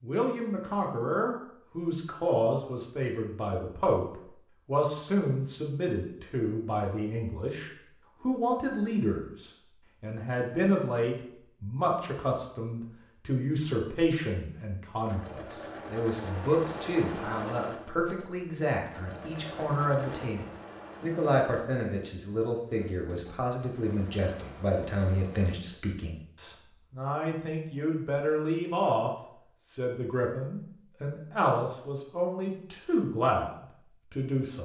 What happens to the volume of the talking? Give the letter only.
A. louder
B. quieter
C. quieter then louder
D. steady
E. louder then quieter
D.